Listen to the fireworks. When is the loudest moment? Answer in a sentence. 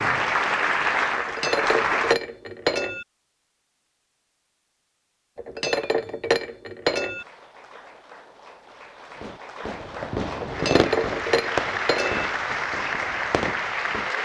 The volume of the fireworks peaks at 11 seconds.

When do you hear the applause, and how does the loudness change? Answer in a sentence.
The applause can be heard briefly from 0.0 to 2.1 s; and from 7.2 to 14.1 s, getting louder.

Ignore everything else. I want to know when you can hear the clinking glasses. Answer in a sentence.
The clinking glasses can be heard from 1.1 to 3.0 s, from 5.3 to 7.2 s and from 10.4 to 12.2 s.